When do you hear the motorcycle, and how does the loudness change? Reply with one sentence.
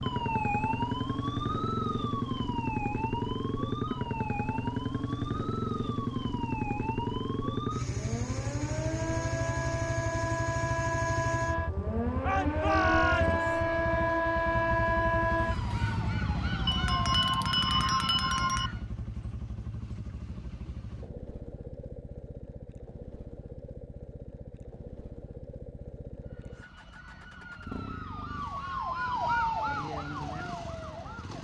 The motorcycle can be heard from 0.0 to 31.3 s, getting quieter.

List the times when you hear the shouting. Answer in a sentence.
You can hear the shouting from 12.2 to 13.4 s.